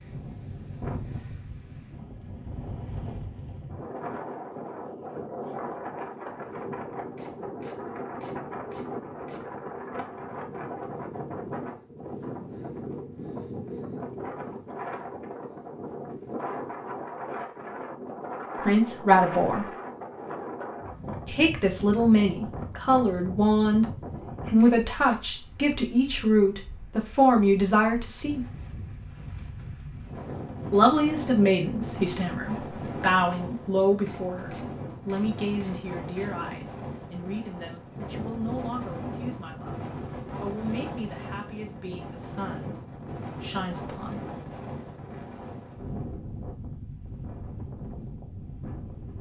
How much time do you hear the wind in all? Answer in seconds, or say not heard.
49 s.